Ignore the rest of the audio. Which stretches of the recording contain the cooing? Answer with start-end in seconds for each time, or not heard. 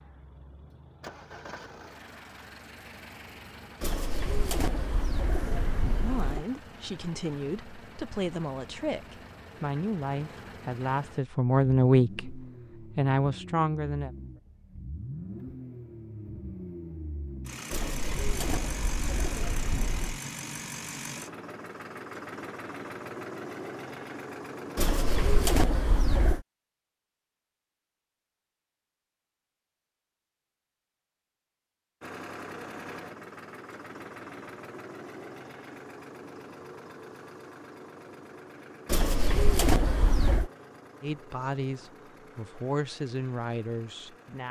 3.8-6.5, 17.7-20.2, 24.8-26.4, 38.9-40.5.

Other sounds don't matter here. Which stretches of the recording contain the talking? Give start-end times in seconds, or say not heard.
6.0-14.1, 41.0-44.4.